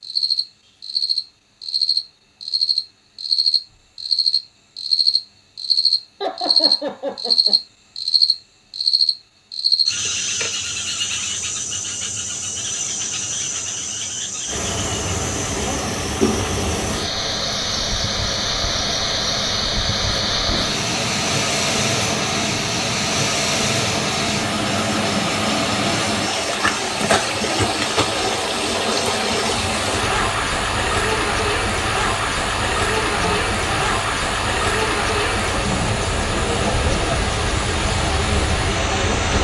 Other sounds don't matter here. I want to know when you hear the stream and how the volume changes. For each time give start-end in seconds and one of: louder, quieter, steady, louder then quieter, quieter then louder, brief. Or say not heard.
14.4-39.3 steady.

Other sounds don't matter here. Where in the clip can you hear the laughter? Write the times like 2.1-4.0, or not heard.
6.2-7.5, 33.1-33.9.